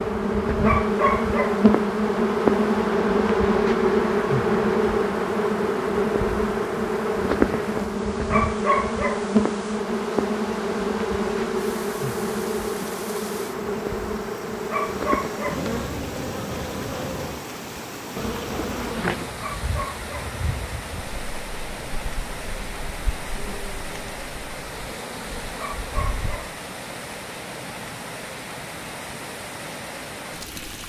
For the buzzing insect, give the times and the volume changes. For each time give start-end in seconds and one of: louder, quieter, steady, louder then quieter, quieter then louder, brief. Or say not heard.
0.0-26.4 quieter.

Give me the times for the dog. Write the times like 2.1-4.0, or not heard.
0.6-1.6, 8.3-9.2, 14.7-15.7, 19.4-20.4, 25.6-26.6.